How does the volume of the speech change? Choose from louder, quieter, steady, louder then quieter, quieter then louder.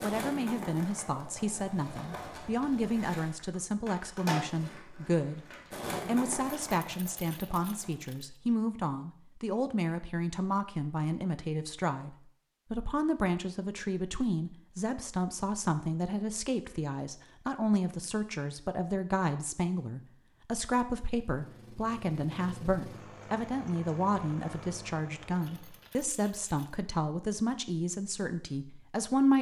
steady.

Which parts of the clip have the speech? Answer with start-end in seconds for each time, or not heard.
0.0-5.4, 6.0-29.3.